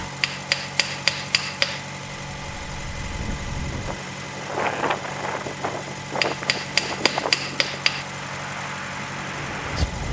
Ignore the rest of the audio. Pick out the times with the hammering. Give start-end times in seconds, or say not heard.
0.2-1.9, 6.2-8.1.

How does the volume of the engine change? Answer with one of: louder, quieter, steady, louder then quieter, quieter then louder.
steady.